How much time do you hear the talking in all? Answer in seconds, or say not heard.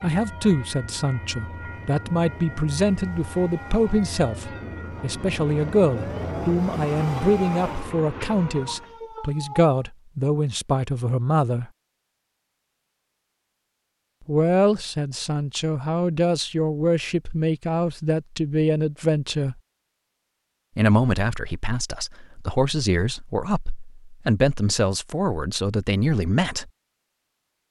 23 s.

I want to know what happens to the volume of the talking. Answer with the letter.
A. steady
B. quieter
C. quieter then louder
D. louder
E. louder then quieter
A.